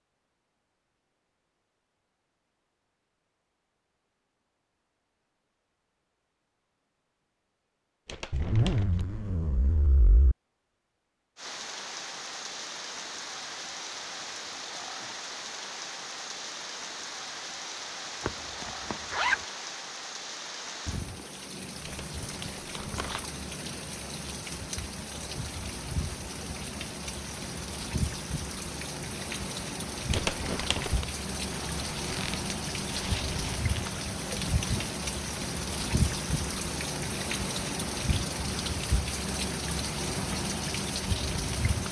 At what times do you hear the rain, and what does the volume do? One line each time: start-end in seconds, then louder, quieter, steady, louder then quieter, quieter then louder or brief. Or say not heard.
11.3-41.8 louder.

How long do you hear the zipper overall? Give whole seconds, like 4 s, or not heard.
6 s.